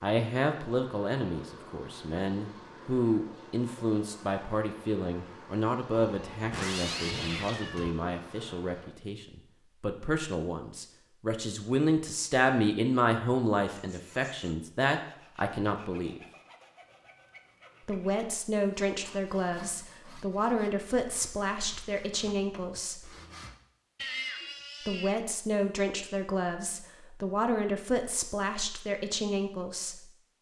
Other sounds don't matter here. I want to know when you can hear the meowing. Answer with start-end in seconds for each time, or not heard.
5.9-8.0, 16.8-17.9, 23.9-25.2.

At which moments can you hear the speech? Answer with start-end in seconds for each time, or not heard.
0.0-16.2, 17.9-23.1, 24.9-30.1.